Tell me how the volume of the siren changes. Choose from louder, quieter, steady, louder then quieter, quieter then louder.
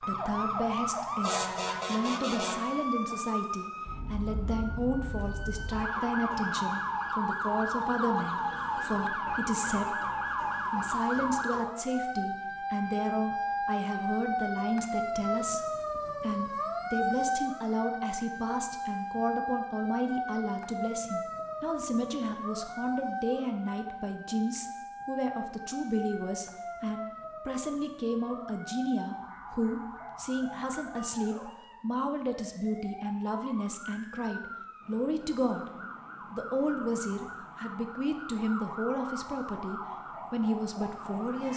quieter.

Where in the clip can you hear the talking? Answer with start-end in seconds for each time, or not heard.
0.0-35.7, 36.3-41.5.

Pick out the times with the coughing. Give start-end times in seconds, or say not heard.
not heard.